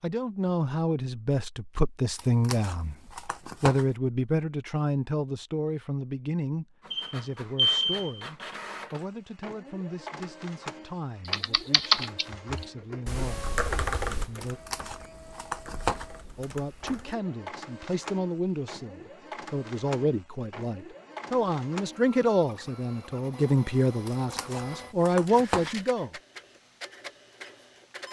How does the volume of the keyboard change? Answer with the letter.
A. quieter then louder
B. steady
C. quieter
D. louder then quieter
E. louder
C.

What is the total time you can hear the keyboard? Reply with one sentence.
You can hear the keyboard for 6 seconds altogether.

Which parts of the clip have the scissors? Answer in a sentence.
You can hear the scissors from 2.1 to 4.0 s, from 14.4 to 16.1 s and from 24.1 to 25.8 s.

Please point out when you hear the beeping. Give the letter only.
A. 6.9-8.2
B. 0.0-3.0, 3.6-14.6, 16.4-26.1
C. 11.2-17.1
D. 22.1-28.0
A.